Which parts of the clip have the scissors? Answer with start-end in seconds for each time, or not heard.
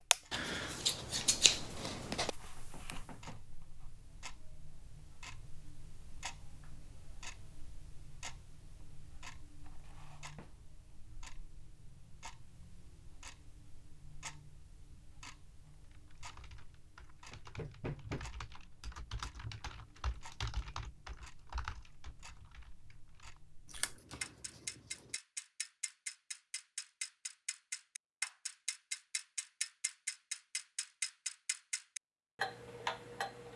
0.3-2.3, 23.6-25.1.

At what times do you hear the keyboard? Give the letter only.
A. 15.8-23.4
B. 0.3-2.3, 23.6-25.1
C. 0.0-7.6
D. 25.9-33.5
A.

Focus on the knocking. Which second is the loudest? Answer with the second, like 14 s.
18 s.